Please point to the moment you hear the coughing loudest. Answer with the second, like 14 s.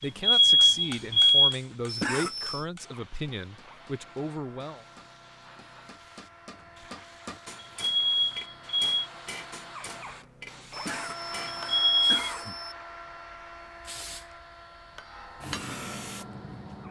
2 s.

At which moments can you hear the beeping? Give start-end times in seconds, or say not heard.
0.0-1.6, 7.6-9.0, 11.7-12.3.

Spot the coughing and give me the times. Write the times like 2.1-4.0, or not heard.
1.9-2.6, 10.7-12.8.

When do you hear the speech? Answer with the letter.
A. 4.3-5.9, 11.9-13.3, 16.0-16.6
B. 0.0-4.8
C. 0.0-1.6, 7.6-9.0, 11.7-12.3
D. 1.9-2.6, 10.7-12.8
B.